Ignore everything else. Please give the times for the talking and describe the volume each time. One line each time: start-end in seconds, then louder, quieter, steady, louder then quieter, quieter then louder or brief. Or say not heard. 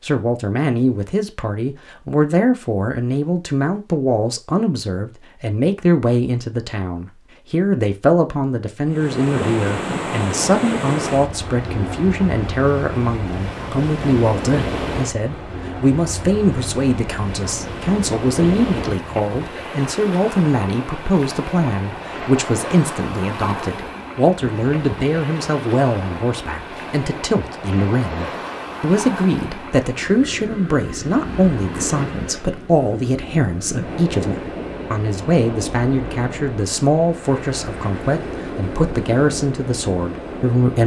0.0-40.8 steady.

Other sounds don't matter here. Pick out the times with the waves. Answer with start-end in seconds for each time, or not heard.
8.8-40.8.